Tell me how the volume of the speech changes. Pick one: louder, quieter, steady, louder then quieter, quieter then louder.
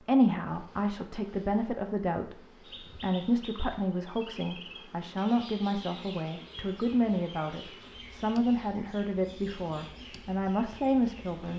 steady.